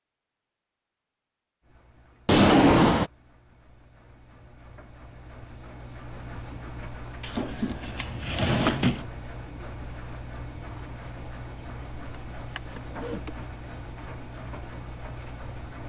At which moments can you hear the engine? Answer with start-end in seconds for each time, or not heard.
1.6-15.8.